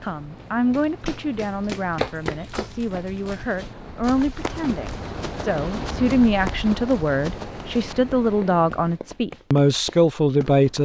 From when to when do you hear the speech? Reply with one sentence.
You can hear the speech from 0.0 to 10.7 s.